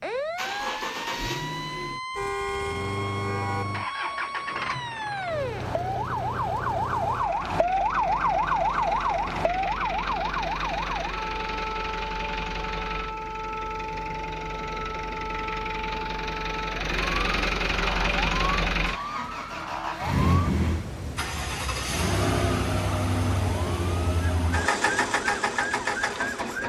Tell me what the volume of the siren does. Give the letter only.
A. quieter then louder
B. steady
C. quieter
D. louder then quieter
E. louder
D.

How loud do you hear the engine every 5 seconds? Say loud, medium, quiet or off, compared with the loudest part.
medium, medium, medium, loud, loud, loud.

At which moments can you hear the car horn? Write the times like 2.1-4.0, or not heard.
2.1-3.6.